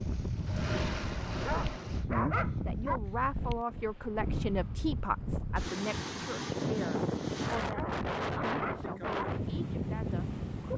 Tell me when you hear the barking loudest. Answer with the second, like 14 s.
2 s.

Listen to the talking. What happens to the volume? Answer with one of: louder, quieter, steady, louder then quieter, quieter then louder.
quieter.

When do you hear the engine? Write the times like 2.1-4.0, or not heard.
0.0-2.0.